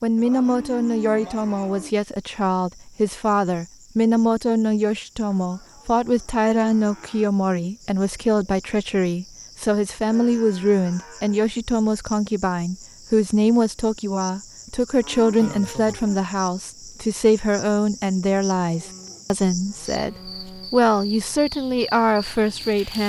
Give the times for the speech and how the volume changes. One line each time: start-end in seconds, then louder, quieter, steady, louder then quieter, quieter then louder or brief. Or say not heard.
0.0-23.0 steady.